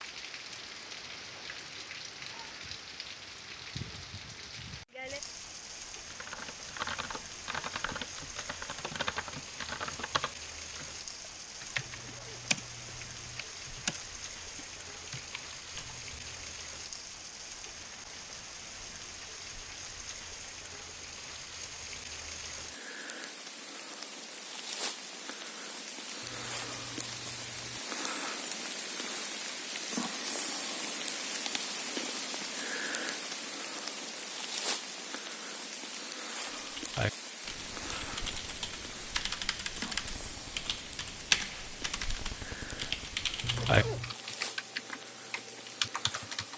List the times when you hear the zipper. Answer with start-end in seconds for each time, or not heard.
11.8-13.4, 26.2-27.8, 43.4-44.1.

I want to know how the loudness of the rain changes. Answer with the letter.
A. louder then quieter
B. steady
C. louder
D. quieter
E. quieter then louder
A.